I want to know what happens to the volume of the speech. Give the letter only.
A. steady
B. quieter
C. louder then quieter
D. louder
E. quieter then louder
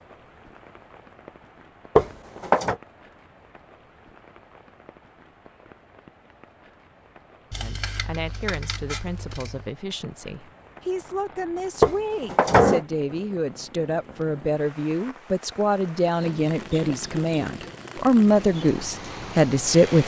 D.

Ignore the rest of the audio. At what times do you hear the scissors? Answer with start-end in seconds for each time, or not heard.
7.5-9.8.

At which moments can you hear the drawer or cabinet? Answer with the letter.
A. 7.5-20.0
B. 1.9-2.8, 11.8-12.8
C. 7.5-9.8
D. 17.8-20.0
B.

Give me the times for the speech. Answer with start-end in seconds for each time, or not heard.
7.5-20.0.